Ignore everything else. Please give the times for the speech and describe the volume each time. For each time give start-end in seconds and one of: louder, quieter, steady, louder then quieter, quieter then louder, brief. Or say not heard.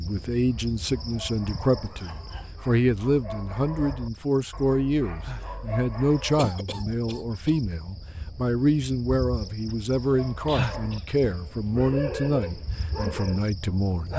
0.0-14.1 steady.